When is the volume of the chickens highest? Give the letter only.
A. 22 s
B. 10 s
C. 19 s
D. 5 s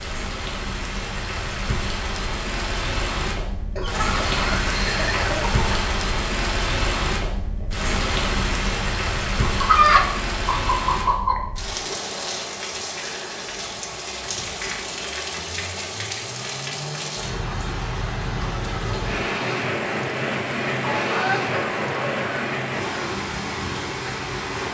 B.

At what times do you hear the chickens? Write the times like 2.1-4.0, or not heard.
3.8-5.7, 9.4-11.4, 20.8-22.6.